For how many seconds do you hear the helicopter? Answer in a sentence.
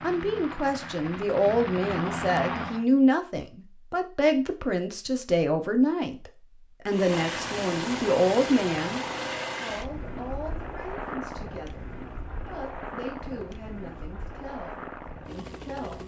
You can hear the helicopter for 12 seconds altogether.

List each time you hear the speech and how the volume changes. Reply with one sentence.
You can hear the speech from 0.0 to 16.0 s, getting quieter.